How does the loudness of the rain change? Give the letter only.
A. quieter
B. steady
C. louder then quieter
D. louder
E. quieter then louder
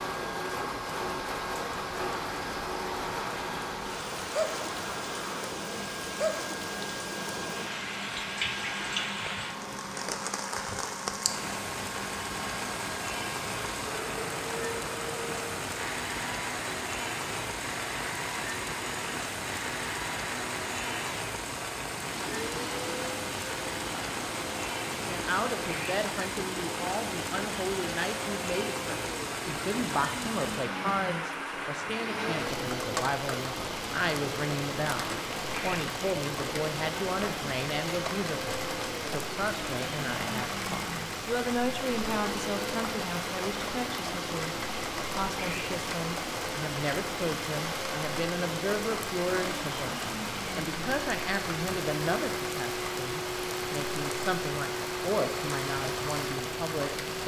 B.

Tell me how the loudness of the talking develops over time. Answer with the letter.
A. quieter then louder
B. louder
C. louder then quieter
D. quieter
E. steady
E.